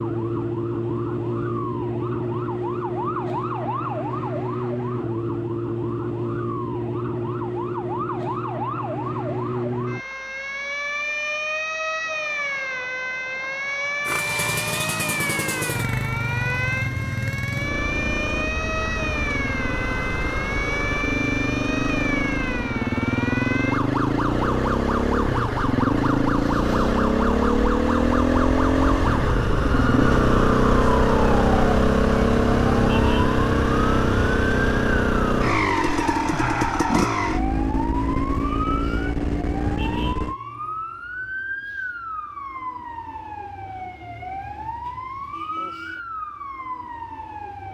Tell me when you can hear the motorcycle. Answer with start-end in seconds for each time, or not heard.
14.1-40.4.